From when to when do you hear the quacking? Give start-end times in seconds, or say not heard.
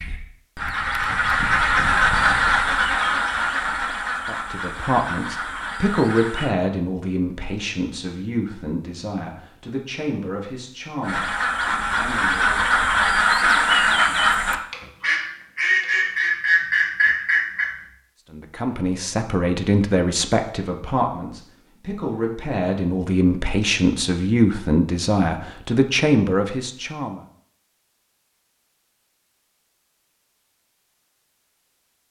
0.0-6.5, 11.0-17.9.